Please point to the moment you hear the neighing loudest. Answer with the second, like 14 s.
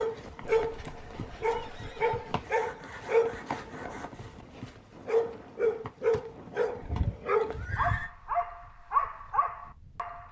8 s.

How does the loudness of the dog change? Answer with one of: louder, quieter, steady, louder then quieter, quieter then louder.
steady.